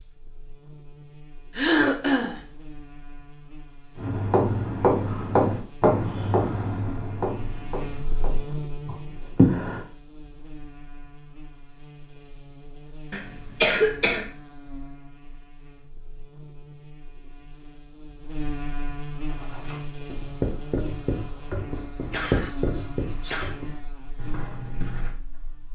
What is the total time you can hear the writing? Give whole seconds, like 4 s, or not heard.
12 s.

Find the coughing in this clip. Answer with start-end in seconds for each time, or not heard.
1.6-2.4, 13.1-14.2, 22.1-23.6.